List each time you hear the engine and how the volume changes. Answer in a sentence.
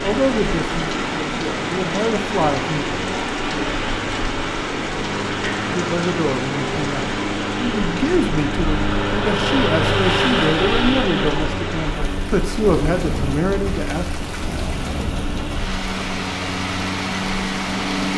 The engine can be heard from 0.0 to 18.1 s, getting louder then quieter.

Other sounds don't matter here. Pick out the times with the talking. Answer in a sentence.
The talking can be heard from 0.0 to 2.9 s and from 5.7 to 14.1 s.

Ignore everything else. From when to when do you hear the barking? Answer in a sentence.
The barking can't be heard in this clip.